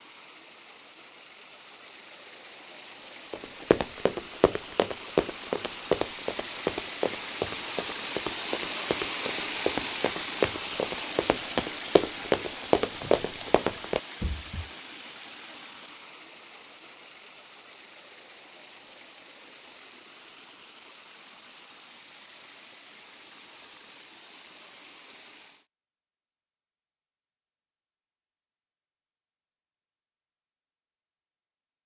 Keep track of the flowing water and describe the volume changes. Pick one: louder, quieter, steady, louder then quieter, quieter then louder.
louder then quieter.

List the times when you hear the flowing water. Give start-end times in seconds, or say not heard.
0.0-25.6.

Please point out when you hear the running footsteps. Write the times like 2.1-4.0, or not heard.
3.3-14.7.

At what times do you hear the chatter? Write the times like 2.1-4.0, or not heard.
not heard.